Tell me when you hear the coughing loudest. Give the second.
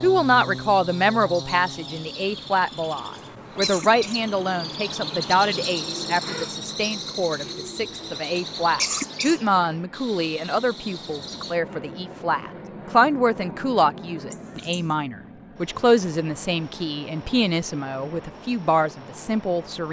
9 s.